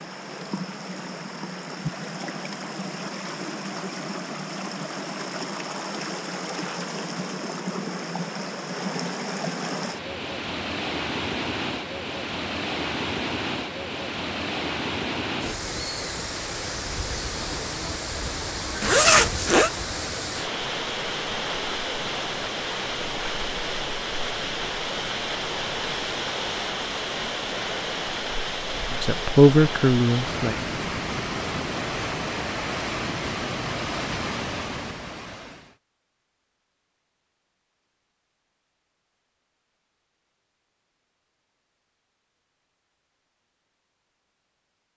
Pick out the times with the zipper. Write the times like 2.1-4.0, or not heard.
18.8-19.7.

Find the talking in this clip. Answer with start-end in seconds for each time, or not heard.
28.9-30.7.